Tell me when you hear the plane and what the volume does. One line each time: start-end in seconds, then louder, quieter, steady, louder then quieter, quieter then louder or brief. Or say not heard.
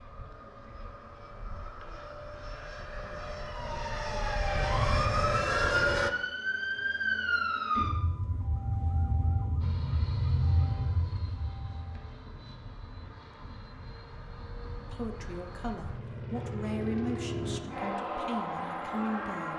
0.0-6.1 louder
9.6-19.5 louder.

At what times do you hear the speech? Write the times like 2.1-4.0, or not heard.
14.8-19.5.